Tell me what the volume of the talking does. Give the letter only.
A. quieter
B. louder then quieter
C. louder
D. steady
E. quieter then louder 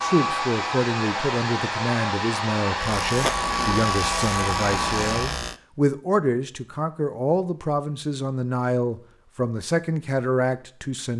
D.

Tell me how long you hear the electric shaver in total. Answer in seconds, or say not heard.
3 s.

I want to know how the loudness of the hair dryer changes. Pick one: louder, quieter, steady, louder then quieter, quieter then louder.
steady.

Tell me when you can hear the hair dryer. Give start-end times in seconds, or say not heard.
0.0-5.4.